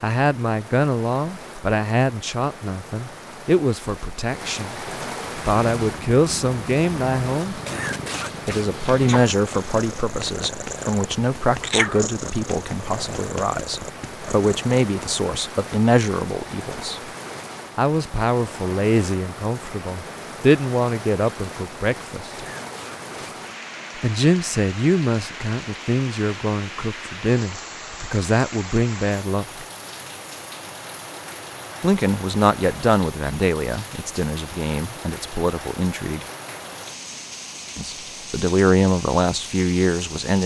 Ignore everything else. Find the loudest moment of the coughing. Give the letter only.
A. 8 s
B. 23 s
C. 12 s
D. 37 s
A.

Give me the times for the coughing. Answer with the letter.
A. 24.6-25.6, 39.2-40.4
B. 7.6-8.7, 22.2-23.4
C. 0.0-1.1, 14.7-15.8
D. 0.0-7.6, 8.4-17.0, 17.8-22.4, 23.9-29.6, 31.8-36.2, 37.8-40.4
B.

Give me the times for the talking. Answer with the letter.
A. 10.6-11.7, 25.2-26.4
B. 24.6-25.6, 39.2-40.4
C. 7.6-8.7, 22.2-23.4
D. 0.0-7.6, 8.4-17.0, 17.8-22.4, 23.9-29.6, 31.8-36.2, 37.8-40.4
D.